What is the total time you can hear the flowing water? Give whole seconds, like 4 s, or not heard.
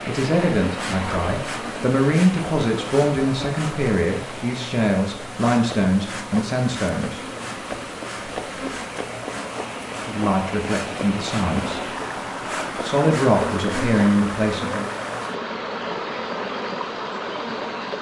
18 s.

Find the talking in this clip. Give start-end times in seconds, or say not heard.
0.1-7.2, 9.9-11.8, 12.7-14.9.